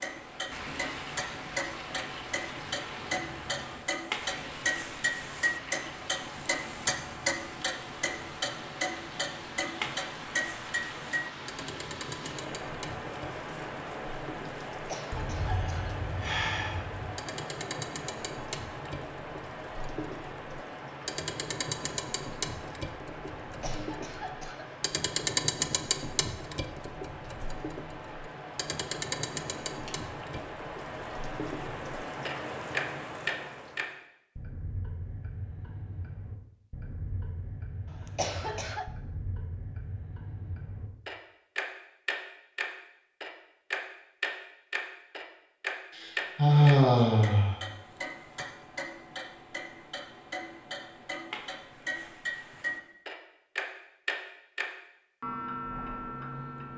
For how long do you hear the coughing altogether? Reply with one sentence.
The coughing can be heard for 4 seconds in total.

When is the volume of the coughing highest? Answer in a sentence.
The volume of the coughing peaks at 38 seconds.